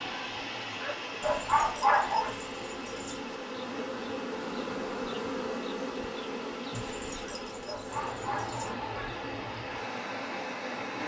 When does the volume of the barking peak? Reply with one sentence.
The volume of the barking peaks at 2 seconds.